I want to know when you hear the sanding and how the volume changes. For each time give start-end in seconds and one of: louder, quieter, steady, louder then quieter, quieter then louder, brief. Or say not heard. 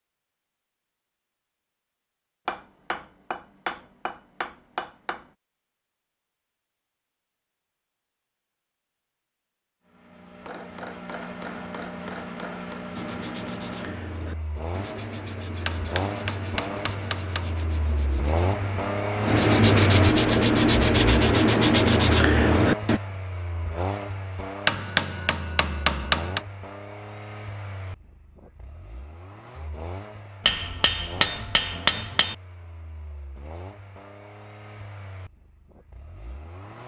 12.9-23.0 louder.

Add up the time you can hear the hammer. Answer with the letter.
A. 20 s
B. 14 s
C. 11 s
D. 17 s
C.